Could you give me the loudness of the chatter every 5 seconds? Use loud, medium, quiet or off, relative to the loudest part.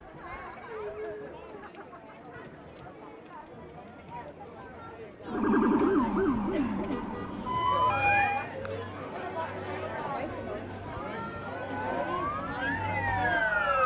medium, loud, loud.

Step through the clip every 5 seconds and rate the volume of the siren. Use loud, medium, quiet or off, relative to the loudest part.
off, loud, loud.